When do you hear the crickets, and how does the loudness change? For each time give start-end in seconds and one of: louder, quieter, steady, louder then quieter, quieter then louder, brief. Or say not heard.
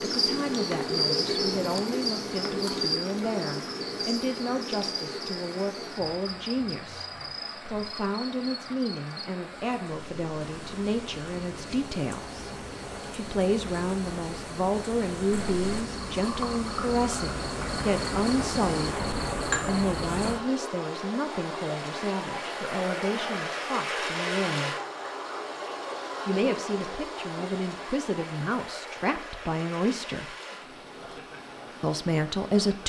0.0-20.4 quieter then louder.